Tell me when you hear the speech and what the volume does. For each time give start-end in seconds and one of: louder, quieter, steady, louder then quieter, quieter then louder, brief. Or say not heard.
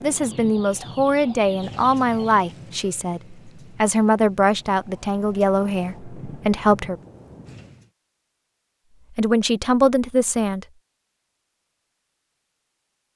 0.0-7.0 steady
9.2-10.7 brief.